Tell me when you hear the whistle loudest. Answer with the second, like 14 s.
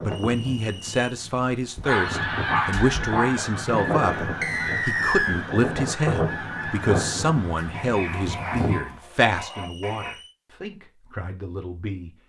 5 s.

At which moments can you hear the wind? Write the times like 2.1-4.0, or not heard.
0.0-8.8.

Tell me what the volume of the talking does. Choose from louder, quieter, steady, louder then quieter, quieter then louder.
quieter.